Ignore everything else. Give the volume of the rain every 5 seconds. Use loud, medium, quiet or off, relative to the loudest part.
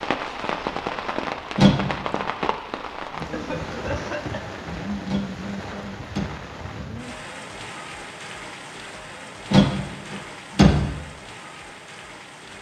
loud, medium, medium.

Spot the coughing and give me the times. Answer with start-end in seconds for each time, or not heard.
3.3-4.5.